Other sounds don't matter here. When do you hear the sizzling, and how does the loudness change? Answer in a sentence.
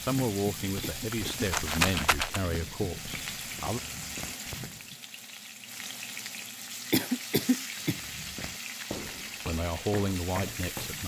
You can hear the sizzling from 0.0 to 11.0 s, at a steady volume.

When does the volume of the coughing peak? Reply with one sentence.
The loudest moment of the coughing is at 7 seconds.